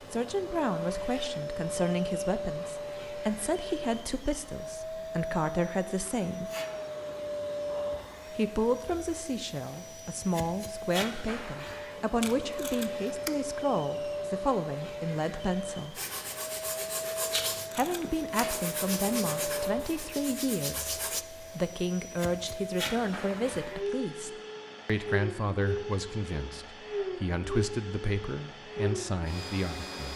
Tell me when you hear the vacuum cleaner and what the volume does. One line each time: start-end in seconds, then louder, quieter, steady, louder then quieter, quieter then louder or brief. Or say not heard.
0.0-30.1 steady.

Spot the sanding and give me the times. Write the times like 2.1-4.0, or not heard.
15.9-21.2.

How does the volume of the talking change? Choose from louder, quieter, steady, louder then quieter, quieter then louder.
steady.